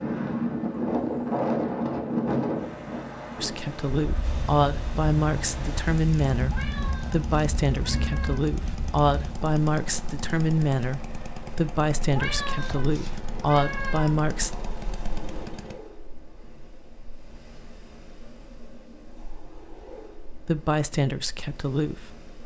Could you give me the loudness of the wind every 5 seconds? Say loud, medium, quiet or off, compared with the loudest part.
loud, medium, quiet, quiet, quiet.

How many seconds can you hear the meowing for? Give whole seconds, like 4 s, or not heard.
4 s.